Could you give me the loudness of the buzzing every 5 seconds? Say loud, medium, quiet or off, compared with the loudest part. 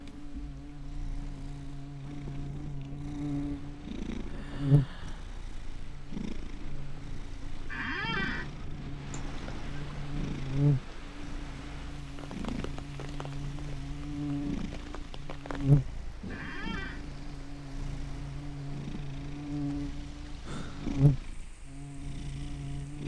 loud, quiet, loud, loud, loud.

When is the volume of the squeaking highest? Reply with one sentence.
The loudest moment of the squeaking is at 8 seconds.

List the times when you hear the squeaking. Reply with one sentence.
The squeaking can be heard from 7.7 to 8.5 s and from 16.3 to 17.1 s.